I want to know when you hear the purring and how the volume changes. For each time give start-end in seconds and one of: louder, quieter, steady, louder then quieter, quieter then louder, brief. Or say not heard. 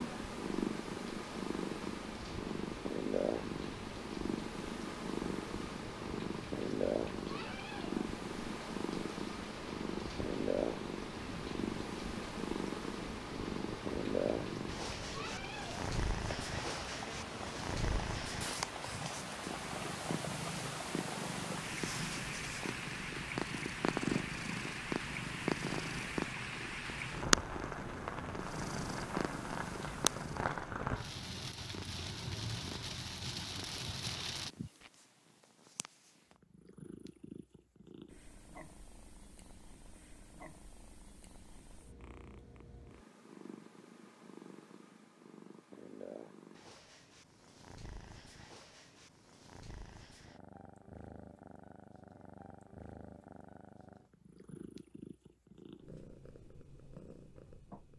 0.0-57.9 quieter.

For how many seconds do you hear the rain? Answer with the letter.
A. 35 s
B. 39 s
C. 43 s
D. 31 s
A.